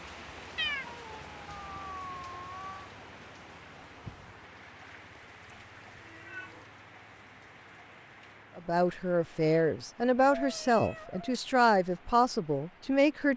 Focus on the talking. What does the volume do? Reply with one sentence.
The volume of the talking stays about the same.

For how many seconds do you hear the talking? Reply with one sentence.
The talking can be heard for 5 seconds in total.